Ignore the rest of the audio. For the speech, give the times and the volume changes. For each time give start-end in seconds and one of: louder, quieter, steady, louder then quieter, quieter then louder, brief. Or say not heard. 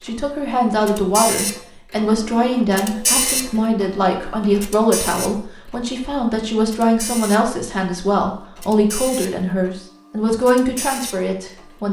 0.0-11.8 steady.